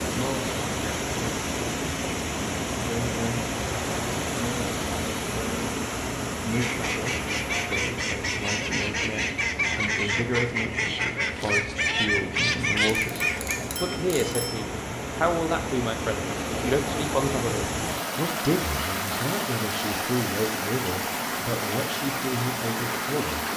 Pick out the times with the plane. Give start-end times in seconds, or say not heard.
not heard.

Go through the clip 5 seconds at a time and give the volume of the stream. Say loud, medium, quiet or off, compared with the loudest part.
loud, loud, medium, loud, loud.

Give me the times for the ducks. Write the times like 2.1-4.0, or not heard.
6.5-13.6.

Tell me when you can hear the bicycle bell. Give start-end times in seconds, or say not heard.
12.9-14.6.